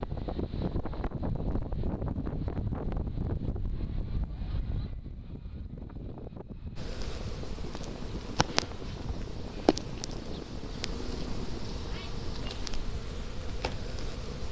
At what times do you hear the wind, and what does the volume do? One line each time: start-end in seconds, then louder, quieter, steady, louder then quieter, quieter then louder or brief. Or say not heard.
0.0-14.4 quieter.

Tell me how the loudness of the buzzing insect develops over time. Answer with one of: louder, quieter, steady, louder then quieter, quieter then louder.
louder then quieter.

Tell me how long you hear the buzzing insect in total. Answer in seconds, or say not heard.
8 s.